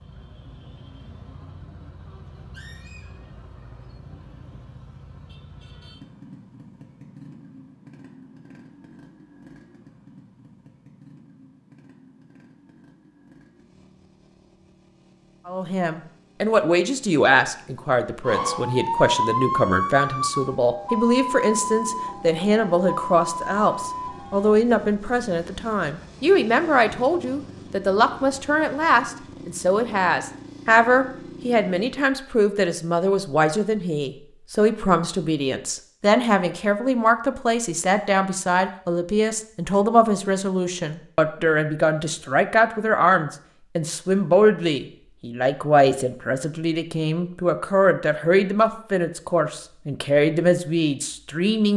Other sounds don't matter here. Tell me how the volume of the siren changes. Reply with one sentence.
The loudness of the siren goes down.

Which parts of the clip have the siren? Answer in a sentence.
The siren can be heard from 18.2 to 24.6 s.